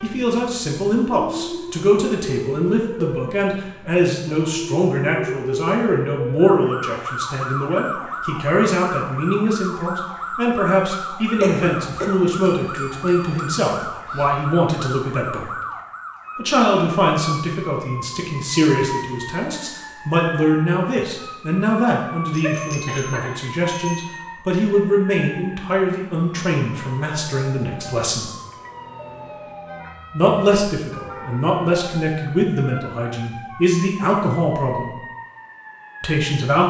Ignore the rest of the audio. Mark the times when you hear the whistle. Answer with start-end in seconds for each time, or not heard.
not heard.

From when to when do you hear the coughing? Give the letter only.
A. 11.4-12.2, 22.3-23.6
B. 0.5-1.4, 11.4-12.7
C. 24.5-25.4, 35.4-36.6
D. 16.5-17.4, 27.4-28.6
A.